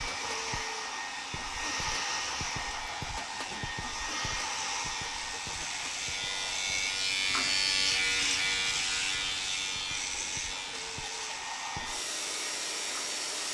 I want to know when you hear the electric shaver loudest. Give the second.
8 s.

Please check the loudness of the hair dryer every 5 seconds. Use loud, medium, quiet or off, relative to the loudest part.
loud, medium, loud.